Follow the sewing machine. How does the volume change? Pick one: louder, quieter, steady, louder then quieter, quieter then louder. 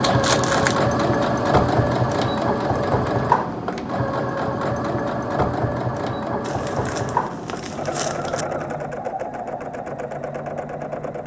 quieter.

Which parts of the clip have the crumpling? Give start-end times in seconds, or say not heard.
0.0-0.8, 6.4-8.4.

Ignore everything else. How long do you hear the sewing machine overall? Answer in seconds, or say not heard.
11 s.